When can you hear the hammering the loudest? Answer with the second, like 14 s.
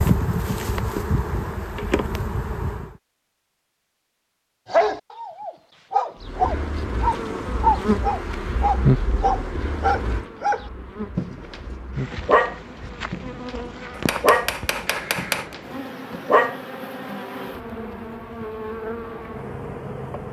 15 s.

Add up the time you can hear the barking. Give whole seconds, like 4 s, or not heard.
11 s.